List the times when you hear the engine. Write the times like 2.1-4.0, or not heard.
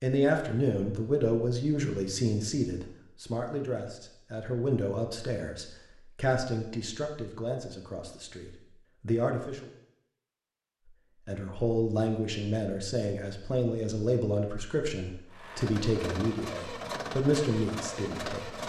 15.3-18.6.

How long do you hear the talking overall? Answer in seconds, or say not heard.
17 s.